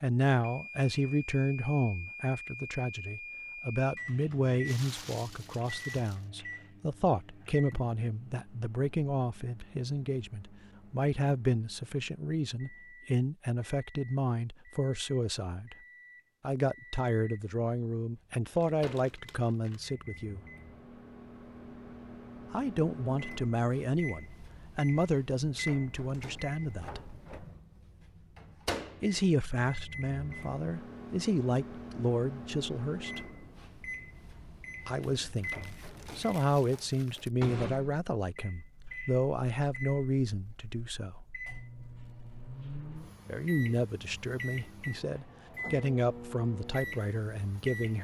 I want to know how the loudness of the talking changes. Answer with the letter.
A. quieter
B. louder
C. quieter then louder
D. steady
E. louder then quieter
D.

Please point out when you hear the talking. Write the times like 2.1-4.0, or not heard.
0.0-15.8, 16.4-20.4, 22.5-27.1, 29.0-33.2, 34.9-41.1, 43.2-47.9.